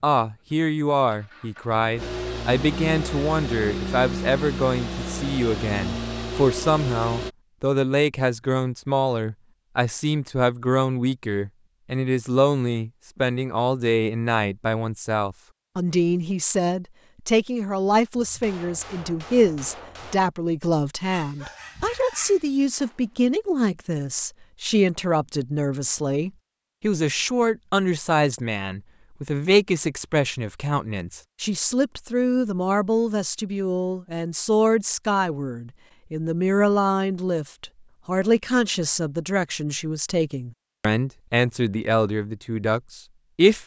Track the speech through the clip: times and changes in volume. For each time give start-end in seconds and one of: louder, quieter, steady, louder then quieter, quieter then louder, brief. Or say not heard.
0.0-43.6 steady.